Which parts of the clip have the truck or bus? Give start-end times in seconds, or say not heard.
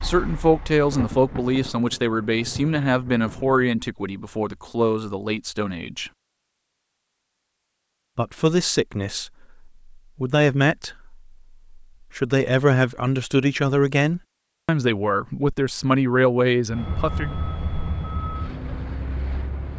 0.0-1.5, 16.7-19.7.